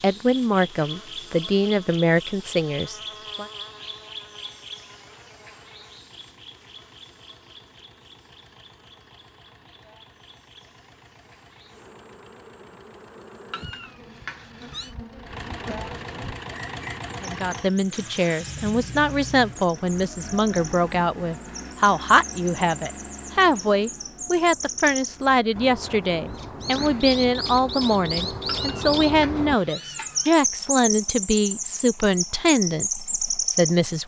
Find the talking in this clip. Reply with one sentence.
You can hear the talking from 0.0 to 3.5 s and from 17.2 to 34.0 s.